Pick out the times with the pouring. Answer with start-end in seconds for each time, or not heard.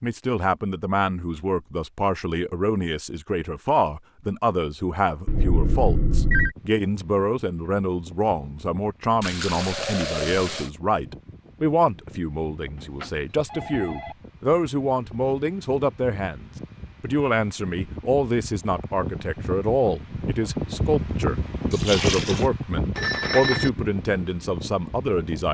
9.2-10.7, 21.7-22.5.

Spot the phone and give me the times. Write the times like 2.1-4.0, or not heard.
5.2-6.5, 12.8-14.2, 22.9-23.7.